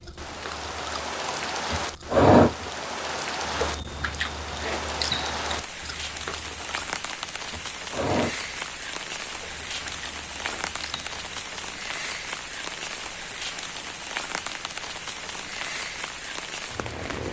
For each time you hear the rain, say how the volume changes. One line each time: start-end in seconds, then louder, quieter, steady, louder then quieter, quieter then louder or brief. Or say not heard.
0.0-17.2 steady.